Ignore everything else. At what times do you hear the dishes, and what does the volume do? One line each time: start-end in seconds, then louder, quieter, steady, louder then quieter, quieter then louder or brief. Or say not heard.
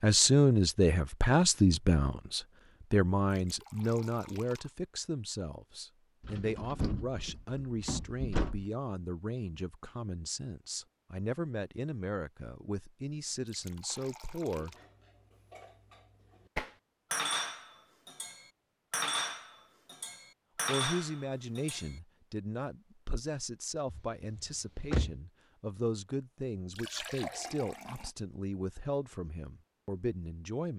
13.7-21.9 louder.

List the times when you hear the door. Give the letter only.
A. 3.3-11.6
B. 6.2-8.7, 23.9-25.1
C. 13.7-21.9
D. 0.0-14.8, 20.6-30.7
B.